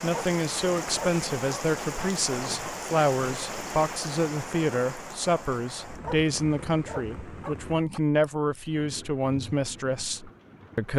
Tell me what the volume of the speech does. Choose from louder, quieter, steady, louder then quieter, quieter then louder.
steady.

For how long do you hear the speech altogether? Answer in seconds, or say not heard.
11 s.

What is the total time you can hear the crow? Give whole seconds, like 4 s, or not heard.
not heard.